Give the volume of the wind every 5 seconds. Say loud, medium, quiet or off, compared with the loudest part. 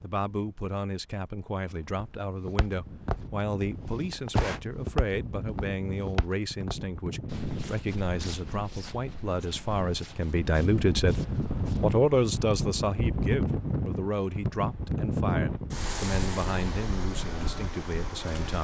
quiet, medium, loud, loud.